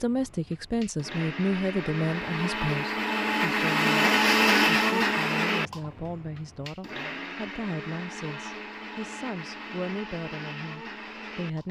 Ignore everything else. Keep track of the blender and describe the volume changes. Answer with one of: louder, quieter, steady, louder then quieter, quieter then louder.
louder then quieter.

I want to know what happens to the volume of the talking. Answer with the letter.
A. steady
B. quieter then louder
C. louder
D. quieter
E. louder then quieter
D.